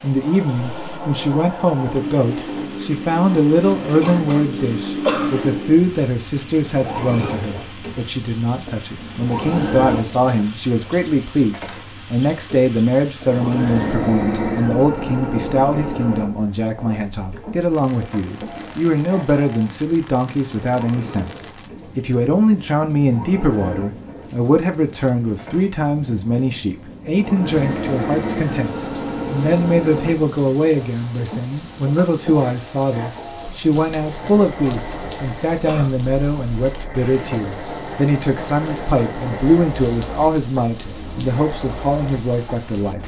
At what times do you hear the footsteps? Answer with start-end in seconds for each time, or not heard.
not heard.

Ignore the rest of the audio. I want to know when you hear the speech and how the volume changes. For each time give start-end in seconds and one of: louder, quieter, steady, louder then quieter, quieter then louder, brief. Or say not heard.
0.0-43.0 steady.